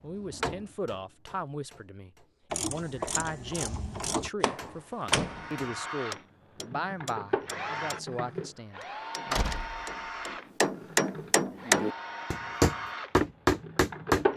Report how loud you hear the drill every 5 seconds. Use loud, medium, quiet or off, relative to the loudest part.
off, loud, loud.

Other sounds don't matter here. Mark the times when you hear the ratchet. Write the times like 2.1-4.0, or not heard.
2.5-4.3.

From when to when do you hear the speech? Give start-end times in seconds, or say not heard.
0.0-9.4.